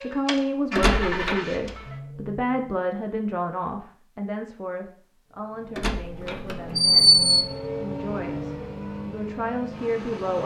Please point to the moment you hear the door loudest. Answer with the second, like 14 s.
7 s.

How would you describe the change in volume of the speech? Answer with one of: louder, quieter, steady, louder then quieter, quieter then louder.
quieter then louder.